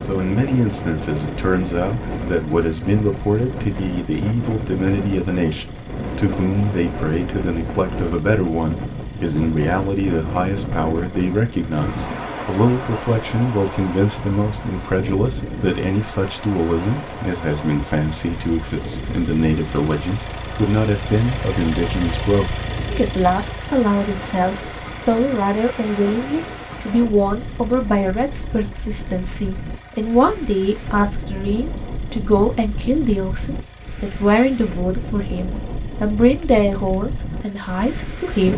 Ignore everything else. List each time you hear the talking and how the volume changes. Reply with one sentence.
The talking can be heard from 0.1 to 38.5 s, at a steady volume.